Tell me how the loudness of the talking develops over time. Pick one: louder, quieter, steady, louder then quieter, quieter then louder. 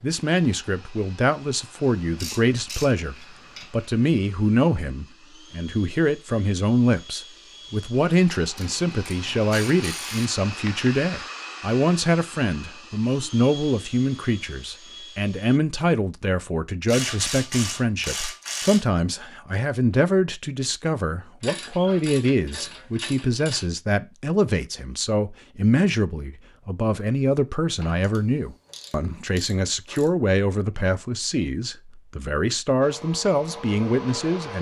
steady.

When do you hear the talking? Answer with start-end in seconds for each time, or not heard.
0.0-34.5.